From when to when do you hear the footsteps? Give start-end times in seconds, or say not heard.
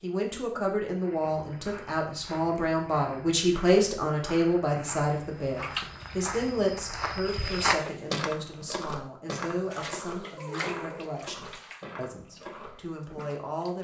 0.8-13.2.